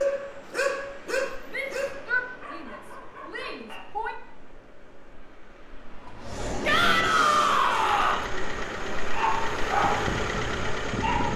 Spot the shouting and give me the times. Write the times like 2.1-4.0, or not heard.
1.5-4.2, 6.7-8.2.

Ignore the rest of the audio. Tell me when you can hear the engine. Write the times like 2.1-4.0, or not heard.
5.9-11.3.